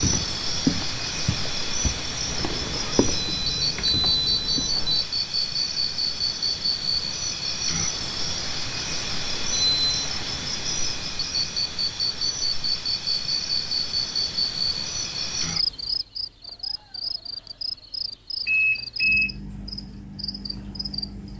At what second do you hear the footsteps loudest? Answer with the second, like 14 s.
1 s.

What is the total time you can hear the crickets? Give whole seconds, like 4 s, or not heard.
21 s.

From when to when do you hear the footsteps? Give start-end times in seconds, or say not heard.
0.0-4.7.